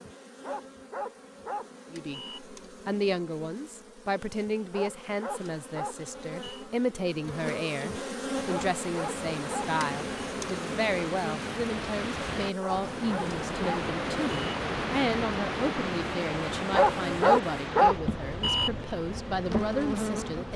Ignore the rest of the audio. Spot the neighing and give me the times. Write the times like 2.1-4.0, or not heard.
not heard.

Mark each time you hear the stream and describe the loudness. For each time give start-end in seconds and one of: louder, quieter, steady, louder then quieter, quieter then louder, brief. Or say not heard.
8.3-20.5 louder then quieter.